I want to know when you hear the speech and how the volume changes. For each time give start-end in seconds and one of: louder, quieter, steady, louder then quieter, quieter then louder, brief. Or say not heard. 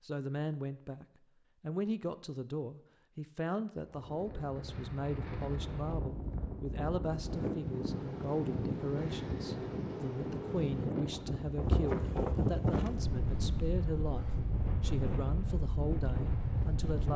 0.0-17.1 steady.